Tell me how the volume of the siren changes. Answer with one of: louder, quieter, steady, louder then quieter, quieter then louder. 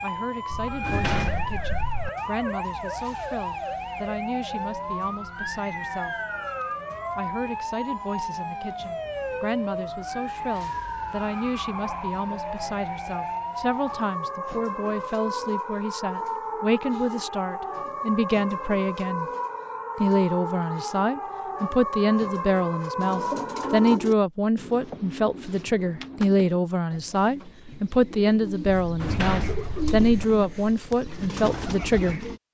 steady.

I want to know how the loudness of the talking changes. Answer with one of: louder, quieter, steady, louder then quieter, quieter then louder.
louder.